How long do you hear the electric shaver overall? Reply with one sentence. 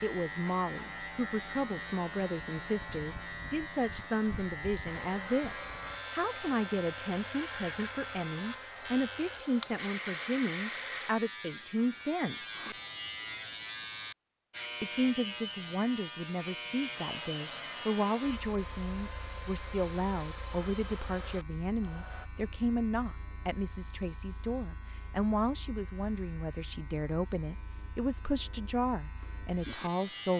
You can hear the electric shaver for 30 seconds altogether.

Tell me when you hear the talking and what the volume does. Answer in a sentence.
You can hear the talking from 0.0 to 12.6 s, at a steady volume; and from 14.8 to 30.3 s, at a steady volume.